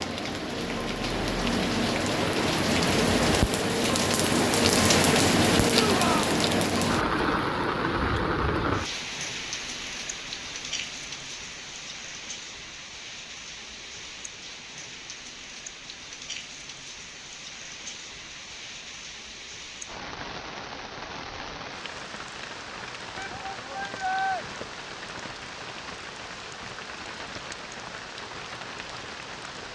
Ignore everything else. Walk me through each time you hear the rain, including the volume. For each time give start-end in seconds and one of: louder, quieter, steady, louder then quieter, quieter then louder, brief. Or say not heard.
0.0-29.7 quieter.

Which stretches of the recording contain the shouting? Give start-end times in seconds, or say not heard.
5.8-6.3, 23.1-24.4.